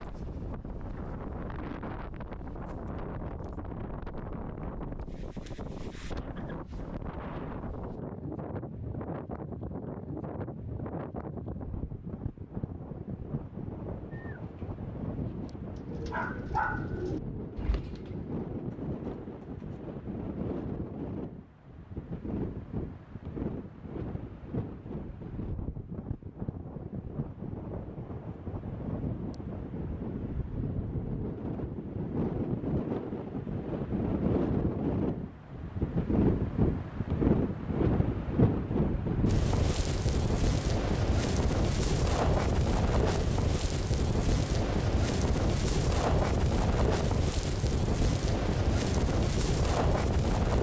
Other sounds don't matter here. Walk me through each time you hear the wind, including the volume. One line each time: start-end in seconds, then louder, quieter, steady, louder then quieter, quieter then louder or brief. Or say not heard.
0.0-50.5 louder.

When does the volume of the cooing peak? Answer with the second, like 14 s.
17 s.